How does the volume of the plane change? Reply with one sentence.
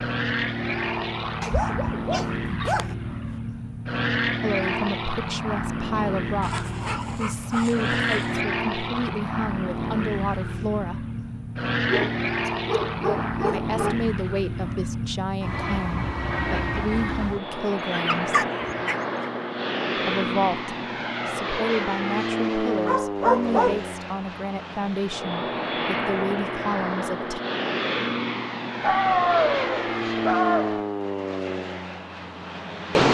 The loudness of the plane stays about the same.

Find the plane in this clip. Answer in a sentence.
The plane can be heard from 0.0 to 33.1 s.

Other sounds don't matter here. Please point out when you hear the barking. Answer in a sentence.
The barking can be heard from 1.4 to 3.0 s, from 6.4 to 8.4 s, from 11.8 to 13.9 s, from 17.8 to 19.2 s, from 22.9 to 23.8 s and from 28.8 to 30.8 s.